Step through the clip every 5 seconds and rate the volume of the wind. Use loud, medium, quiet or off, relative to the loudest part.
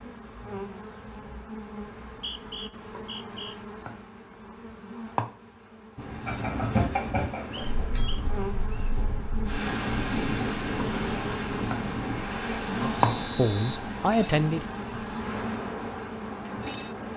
off, loud, loud, medium.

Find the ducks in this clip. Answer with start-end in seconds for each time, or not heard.
not heard.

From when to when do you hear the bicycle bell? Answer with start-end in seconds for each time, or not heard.
6.2-8.1.